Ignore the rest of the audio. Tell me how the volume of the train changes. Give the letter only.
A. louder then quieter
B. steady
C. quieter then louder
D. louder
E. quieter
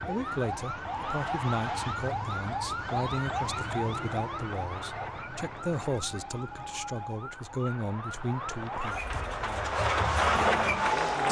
D.